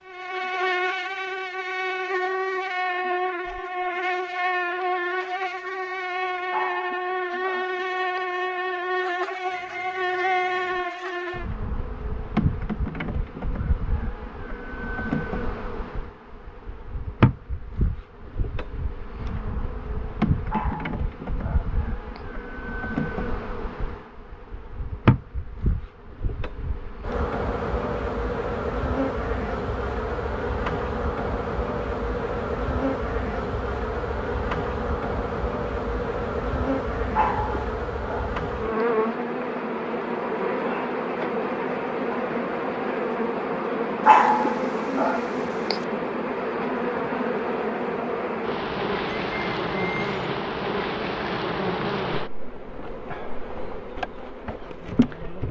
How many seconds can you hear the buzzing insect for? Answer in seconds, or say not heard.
55 s.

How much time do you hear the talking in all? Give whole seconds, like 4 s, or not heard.
not heard.